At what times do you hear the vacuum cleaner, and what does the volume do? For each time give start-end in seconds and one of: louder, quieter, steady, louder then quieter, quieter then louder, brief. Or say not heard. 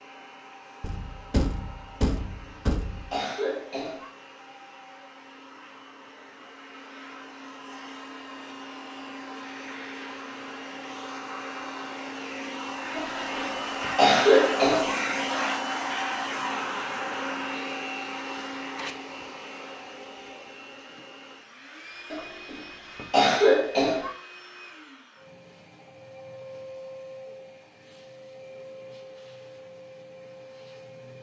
0.0-31.1 louder then quieter.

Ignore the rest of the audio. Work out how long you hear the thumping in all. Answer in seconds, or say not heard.
2 s.